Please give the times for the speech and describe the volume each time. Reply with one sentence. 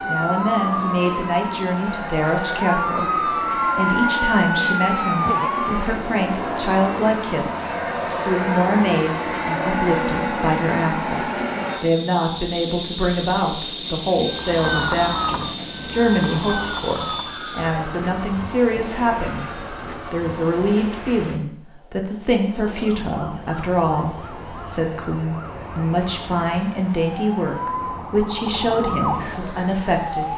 You can hear the speech from 0.1 to 30.3 s, at a steady volume.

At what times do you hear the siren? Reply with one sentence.
The siren can be heard from 0.0 to 5.9 s, from 14.2 to 21.0 s and from 22.6 to 30.3 s.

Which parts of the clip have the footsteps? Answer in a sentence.
The footsteps can't be heard in this clip.